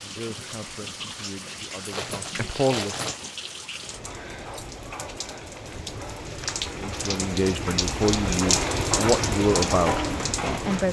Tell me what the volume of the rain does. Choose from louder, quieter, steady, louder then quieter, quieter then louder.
louder.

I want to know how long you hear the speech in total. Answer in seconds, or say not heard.
7 s.